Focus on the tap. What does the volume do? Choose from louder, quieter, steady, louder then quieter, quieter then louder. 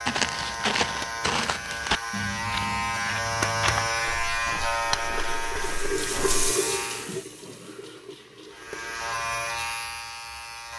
louder then quieter.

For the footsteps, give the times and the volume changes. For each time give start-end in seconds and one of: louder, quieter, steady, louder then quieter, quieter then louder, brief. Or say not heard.
0.1-6.4 quieter.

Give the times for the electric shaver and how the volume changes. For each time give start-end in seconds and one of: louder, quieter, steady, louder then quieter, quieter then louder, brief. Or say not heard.
0.0-7.1 louder then quieter
8.5-10.7 brief.